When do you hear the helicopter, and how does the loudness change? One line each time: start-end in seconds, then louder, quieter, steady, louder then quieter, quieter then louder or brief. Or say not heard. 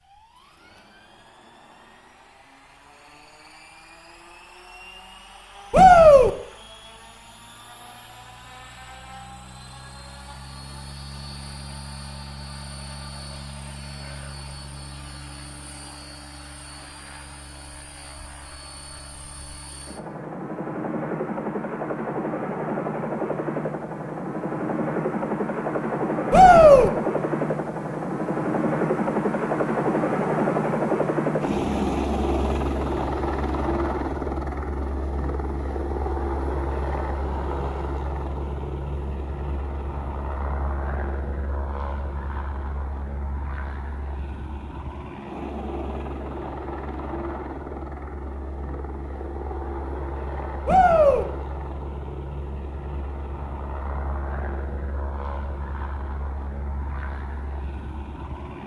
0.0-58.6 louder then quieter.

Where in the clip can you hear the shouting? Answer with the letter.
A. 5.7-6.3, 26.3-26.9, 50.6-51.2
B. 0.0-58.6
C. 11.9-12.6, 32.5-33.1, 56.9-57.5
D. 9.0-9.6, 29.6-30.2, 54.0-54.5
A.